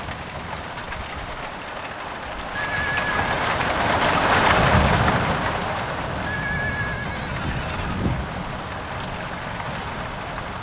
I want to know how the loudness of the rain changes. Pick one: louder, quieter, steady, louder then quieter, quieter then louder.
louder then quieter.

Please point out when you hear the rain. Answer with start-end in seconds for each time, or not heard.
0.0-10.5.